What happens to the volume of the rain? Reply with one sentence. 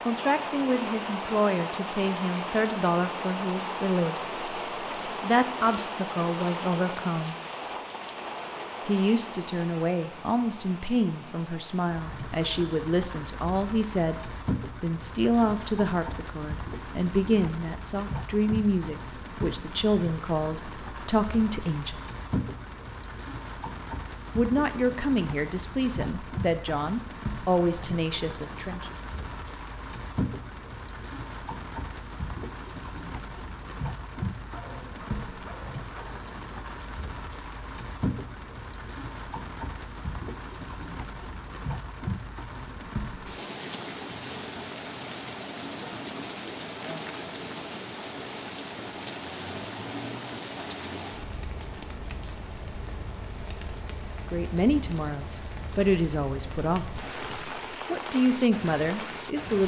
The loudness of the rain stays about the same.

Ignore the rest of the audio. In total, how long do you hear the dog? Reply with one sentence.
The dog can be heard for 2 seconds in total.